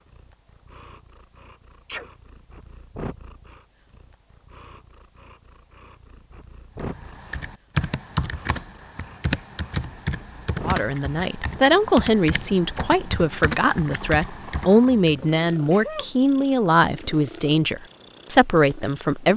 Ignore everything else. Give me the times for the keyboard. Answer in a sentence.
You can hear the keyboard from 6.8 to 15.2 s.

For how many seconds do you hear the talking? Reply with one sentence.
You can hear the talking for 9 seconds altogether.